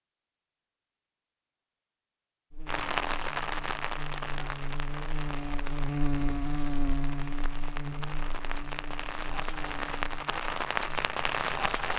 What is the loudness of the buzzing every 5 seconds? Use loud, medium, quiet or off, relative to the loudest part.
medium, loud, quiet.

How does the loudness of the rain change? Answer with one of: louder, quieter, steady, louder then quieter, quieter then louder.
quieter then louder.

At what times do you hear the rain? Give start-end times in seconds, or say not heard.
2.6-11.9.